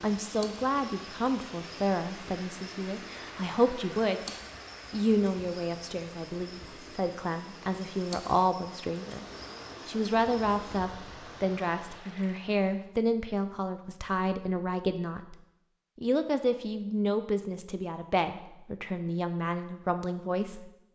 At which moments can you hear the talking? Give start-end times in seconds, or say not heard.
0.0-9.2, 9.8-15.3, 15.9-20.7.